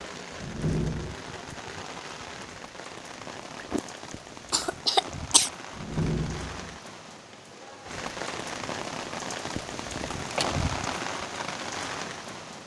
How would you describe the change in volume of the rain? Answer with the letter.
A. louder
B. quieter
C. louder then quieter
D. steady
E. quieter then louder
A.